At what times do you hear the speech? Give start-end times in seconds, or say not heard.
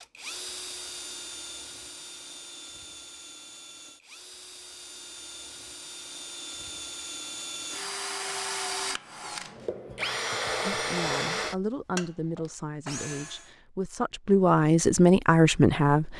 10.6-16.1.